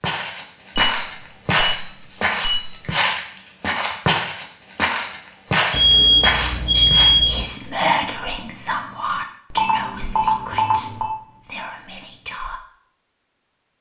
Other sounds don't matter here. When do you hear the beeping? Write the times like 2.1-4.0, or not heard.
0.8-2.9, 5.7-7.5, 9.6-11.2.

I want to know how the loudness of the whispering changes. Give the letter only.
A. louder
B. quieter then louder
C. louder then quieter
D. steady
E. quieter
E.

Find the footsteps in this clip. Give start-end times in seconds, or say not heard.
0.0-7.1.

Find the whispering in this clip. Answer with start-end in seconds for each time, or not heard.
6.7-12.6.